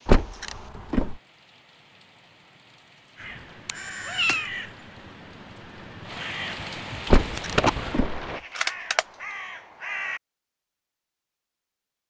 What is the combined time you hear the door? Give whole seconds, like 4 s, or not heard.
2 s.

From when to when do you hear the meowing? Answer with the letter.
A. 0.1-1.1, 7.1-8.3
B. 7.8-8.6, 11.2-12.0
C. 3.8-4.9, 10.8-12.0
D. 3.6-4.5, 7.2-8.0
D.